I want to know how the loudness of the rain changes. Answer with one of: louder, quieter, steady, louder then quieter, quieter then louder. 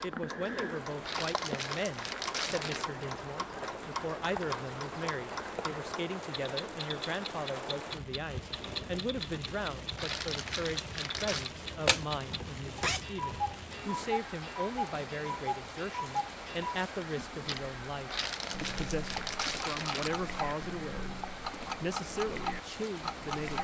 steady.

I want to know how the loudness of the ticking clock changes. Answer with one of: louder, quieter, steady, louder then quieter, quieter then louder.
steady.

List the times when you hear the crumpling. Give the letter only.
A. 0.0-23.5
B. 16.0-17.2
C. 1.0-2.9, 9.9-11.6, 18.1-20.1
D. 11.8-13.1
C.